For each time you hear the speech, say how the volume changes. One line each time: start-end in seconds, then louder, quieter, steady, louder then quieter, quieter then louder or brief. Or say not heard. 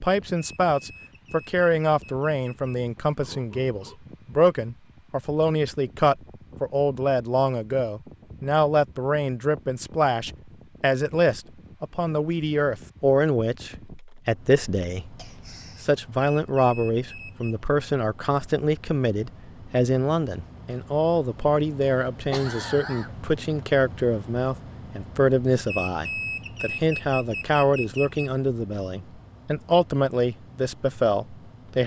0.0-31.8 steady.